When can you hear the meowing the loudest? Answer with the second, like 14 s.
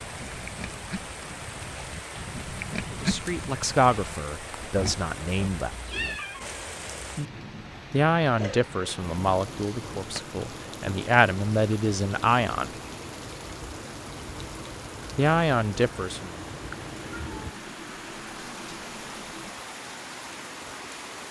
6 s.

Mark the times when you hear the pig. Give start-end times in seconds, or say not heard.
0.0-6.2.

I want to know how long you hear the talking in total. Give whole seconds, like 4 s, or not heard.
9 s.